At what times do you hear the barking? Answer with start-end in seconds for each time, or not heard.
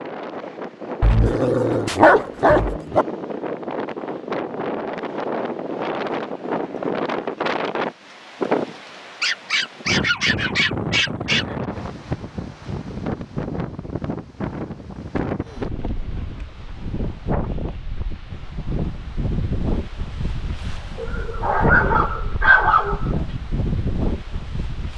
1.0-3.0, 9.2-11.4, 20.9-23.4.